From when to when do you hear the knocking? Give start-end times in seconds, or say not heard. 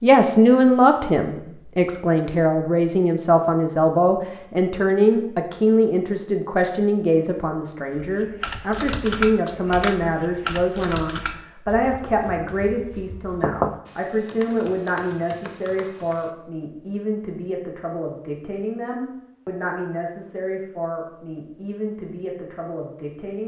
13.4-13.8.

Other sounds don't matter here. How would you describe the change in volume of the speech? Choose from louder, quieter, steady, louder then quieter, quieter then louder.
quieter.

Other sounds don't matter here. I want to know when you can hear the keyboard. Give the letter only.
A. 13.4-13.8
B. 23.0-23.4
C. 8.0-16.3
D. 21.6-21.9
C.